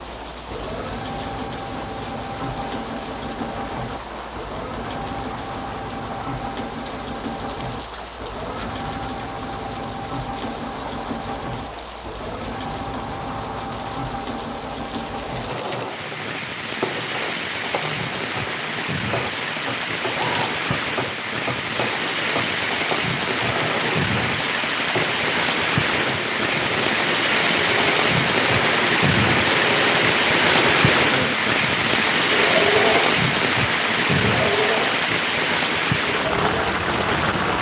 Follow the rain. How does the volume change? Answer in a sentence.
The volume of the rain goes up.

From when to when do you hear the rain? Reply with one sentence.
You can hear the rain from 0.0 to 37.5 s.